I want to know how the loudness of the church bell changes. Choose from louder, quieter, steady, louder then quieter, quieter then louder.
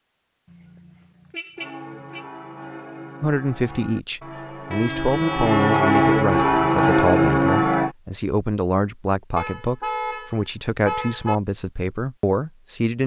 louder.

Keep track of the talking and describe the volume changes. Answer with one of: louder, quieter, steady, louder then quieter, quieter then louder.
steady.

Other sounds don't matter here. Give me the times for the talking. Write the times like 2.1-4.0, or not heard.
3.2-13.0.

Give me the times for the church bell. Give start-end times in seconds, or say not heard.
1.6-8.0.